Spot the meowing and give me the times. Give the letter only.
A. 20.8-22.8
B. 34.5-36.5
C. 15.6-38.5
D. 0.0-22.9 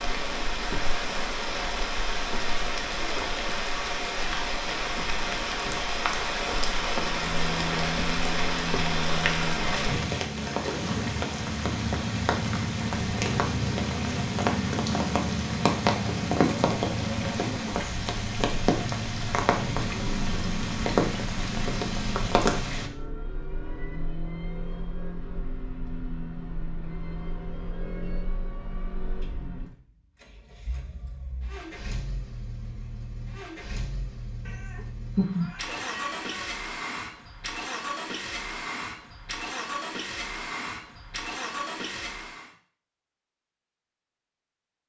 B.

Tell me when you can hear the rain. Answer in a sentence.
The rain can be heard from 0.0 to 22.9 s.